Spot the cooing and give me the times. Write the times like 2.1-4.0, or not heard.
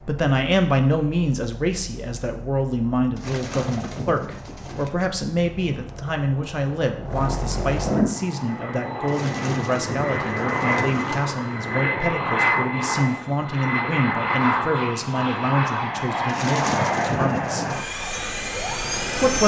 3.1-5.0, 9.1-11.3, 16.2-17.9.